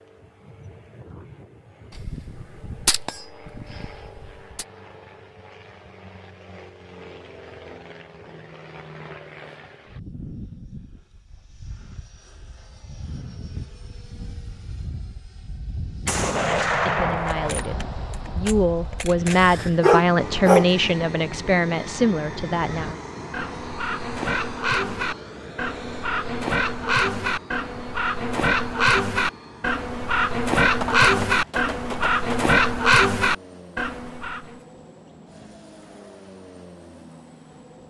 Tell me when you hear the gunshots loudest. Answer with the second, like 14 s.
17 s.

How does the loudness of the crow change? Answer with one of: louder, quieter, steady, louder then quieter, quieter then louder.
louder.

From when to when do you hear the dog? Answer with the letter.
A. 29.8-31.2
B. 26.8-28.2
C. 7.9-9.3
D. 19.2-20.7
D.